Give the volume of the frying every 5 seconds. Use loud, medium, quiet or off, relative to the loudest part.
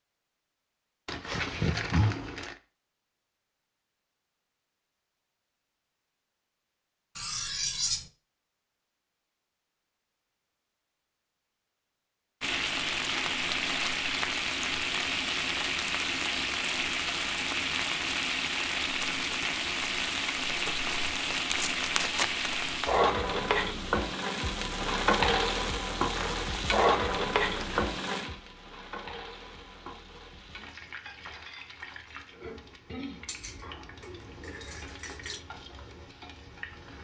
off, off, loud, loud, loud, loud, quiet, quiet.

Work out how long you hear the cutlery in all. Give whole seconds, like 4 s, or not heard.
3 s.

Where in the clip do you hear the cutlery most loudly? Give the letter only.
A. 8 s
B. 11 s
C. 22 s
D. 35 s
A.